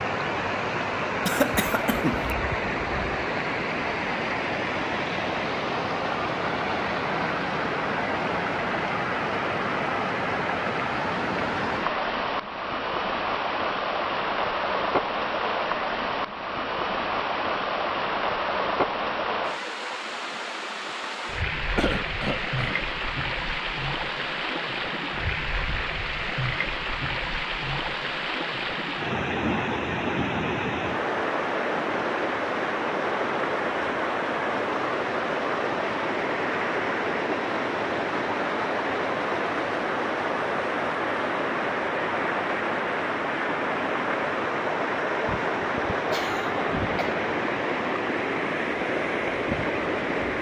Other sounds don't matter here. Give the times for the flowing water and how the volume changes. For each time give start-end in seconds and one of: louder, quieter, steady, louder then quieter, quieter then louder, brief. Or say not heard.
0.0-50.3 steady.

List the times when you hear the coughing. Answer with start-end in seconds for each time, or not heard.
1.2-2.3, 21.8-22.8, 45.2-47.1.